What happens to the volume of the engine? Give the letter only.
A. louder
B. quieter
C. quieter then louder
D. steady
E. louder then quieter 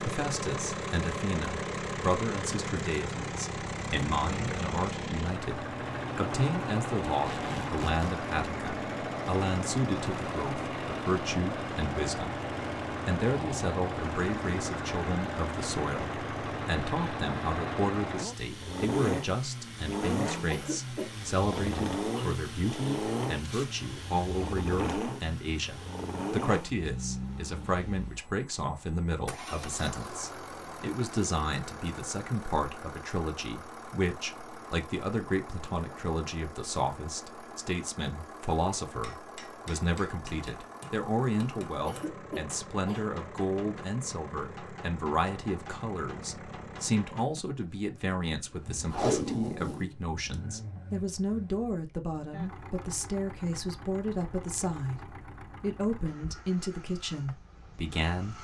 B.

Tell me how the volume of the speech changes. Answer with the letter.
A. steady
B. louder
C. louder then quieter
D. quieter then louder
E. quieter
A.